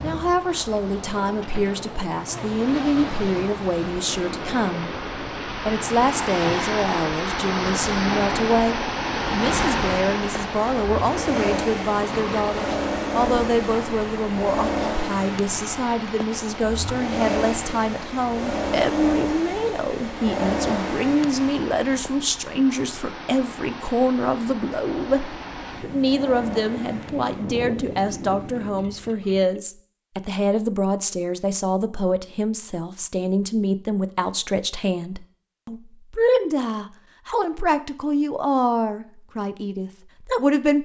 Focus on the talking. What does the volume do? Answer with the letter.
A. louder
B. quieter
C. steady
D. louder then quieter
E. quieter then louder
C.